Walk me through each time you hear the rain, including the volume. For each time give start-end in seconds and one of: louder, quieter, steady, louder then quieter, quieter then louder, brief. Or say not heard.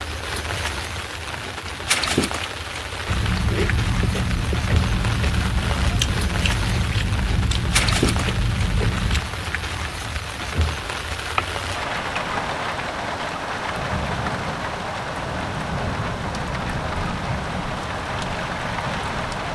0.0-19.4 steady.